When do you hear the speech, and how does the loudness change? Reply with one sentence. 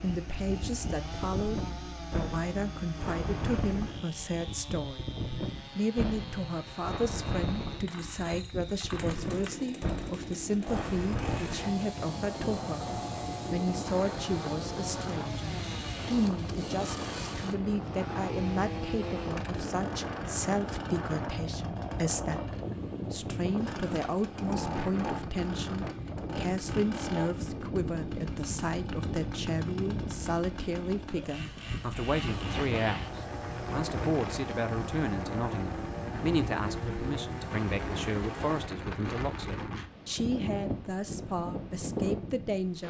The speech can be heard from 0.0 to 5.0 s, at a steady volume; and from 5.8 to 42.8 s, at a steady volume.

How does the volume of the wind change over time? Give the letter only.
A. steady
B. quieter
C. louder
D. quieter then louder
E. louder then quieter
A.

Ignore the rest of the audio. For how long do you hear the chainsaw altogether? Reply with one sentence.
The chainsaw can be heard for 39 seconds in total.